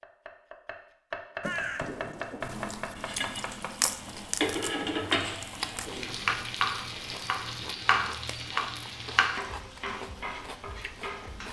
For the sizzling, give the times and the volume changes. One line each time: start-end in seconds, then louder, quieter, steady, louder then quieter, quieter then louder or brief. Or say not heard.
3.0-11.4 quieter.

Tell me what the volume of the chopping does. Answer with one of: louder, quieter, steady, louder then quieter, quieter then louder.
louder.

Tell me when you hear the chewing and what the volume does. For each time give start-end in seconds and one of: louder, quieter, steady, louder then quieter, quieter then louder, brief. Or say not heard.
2.4-11.4 quieter.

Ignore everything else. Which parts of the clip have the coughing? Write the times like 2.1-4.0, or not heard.
1.4-2.5.